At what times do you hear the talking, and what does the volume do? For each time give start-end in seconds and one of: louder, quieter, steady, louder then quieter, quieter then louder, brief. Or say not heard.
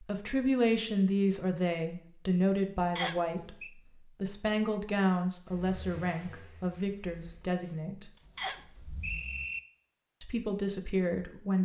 0.0-8.1 quieter
10.2-11.5 brief.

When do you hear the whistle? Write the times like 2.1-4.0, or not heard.
3.0-3.7, 8.3-9.6.